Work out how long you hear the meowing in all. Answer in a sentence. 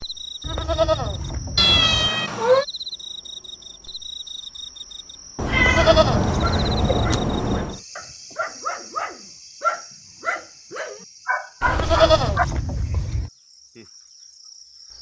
The meowing can be heard for 4 seconds in total.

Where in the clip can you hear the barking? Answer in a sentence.
You can hear the barking from 6.4 to 12.4 s.